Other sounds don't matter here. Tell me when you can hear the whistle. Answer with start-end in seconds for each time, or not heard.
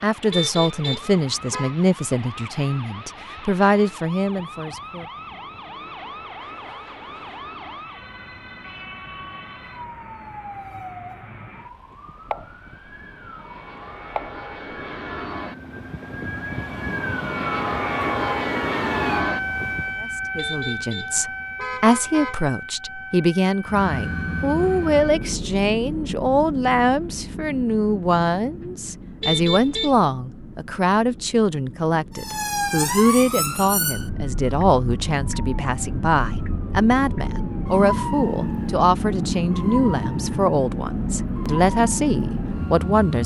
not heard.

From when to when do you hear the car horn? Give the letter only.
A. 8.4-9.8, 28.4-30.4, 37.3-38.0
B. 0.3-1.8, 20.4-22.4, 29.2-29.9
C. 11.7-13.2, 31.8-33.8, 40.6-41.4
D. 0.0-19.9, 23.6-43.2
B.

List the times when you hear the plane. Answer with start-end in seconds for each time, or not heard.
0.0-19.9, 23.6-43.2.